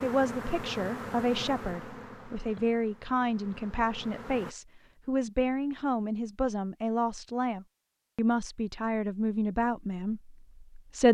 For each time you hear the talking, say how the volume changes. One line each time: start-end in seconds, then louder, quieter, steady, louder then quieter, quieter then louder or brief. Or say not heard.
0.0-11.0 steady.